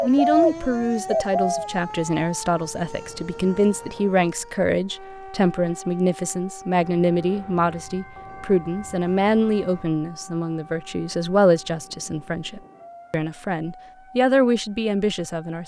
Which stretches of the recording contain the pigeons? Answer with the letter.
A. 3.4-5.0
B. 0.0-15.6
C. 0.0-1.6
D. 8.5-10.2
C.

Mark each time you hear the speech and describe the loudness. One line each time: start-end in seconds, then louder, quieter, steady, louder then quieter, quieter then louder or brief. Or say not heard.
0.0-15.6 steady.